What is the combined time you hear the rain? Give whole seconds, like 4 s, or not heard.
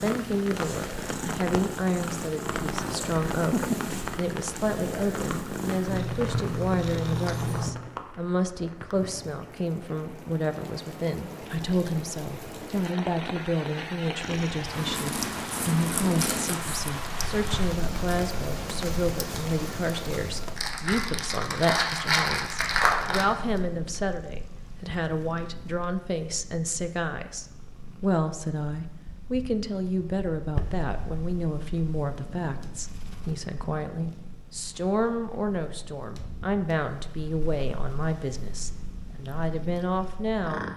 21 s.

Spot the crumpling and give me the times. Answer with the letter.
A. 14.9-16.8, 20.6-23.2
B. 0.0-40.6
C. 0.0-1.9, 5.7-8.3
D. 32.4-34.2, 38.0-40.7
A.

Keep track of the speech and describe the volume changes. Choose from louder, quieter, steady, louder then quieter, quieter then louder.
steady.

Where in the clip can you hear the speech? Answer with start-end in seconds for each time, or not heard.
0.0-40.6.